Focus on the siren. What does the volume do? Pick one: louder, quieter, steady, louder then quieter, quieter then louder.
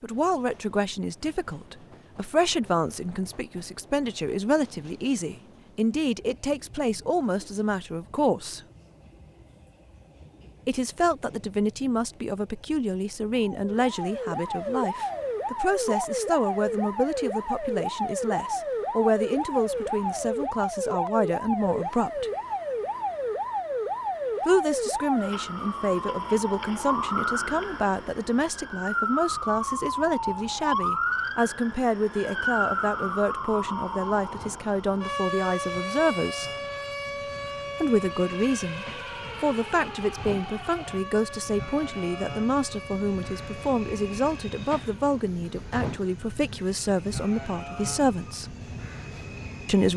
quieter.